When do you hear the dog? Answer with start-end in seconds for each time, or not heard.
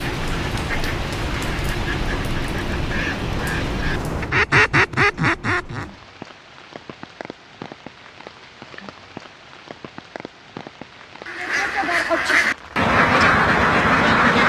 not heard.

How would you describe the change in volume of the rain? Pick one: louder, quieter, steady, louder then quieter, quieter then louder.
quieter.